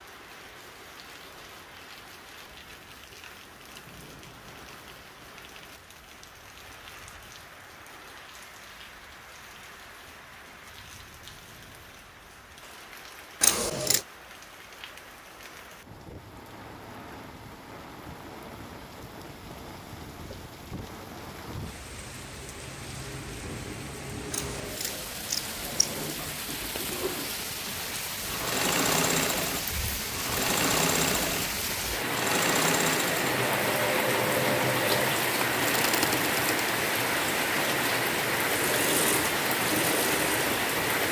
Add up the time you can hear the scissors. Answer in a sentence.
You can hear the scissors for 2 seconds altogether.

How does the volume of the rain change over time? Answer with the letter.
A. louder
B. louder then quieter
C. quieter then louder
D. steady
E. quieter
A.